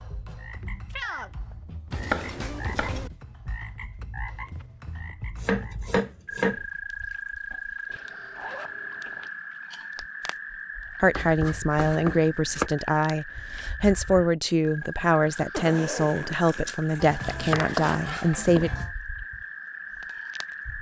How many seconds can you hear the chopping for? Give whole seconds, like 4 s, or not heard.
6 s.